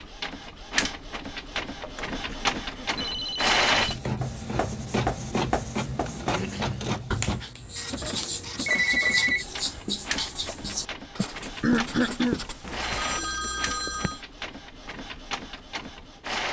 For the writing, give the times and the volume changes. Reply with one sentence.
The writing can be heard from 4.2 to 13.9 s, at a steady volume.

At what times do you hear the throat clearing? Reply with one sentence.
You can hear the throat clearing from 2.2 to 3.3 s, from 6.3 to 7.0 s and from 11.2 to 12.4 s.